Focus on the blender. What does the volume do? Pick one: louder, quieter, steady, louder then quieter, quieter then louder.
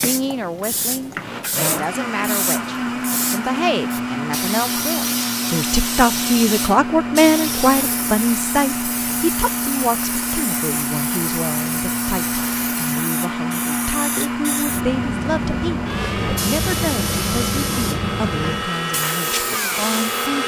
steady.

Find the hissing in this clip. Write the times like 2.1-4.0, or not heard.
0.0-20.3.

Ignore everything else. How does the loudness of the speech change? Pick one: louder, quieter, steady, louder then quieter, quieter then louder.
louder then quieter.